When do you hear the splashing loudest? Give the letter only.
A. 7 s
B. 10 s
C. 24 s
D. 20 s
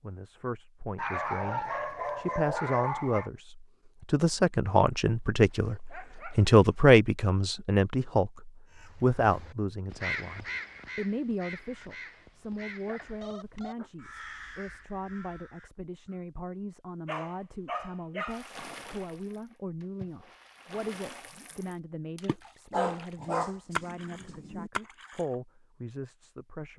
C.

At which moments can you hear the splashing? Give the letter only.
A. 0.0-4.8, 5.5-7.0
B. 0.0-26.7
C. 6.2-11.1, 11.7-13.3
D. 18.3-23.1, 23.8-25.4
D.